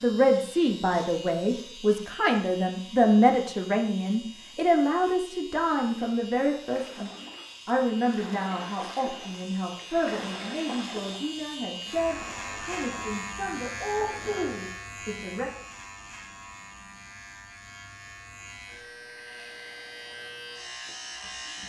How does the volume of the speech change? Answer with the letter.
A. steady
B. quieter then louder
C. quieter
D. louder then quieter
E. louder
C.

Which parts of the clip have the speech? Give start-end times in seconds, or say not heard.
0.0-15.5.